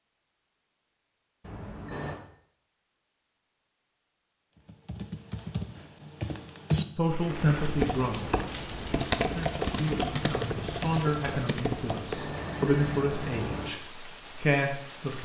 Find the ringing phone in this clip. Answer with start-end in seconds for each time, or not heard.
1.4-2.2, 11.9-13.7.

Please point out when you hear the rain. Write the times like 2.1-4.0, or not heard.
7.0-15.2.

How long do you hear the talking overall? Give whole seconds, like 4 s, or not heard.
8 s.